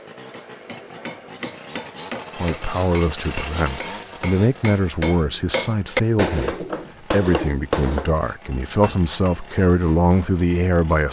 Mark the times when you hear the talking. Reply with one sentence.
You can hear the talking from 2.4 to 11.0 s.